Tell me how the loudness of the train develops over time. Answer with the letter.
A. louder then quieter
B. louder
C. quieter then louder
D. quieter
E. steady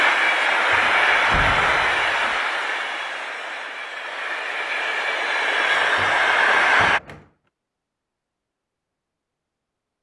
C.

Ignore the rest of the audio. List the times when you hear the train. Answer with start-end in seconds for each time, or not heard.
0.0-7.0.